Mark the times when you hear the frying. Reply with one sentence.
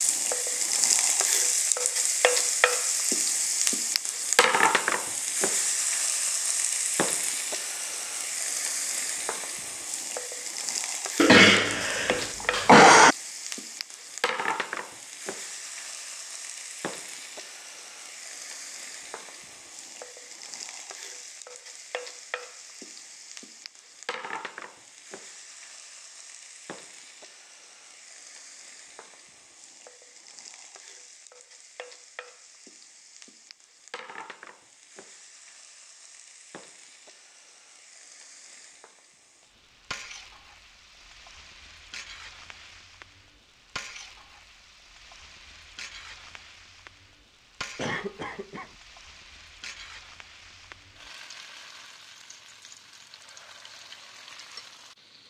You can hear the frying from 0.0 to 55.2 s.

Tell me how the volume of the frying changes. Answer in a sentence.
The loudness of the frying goes down.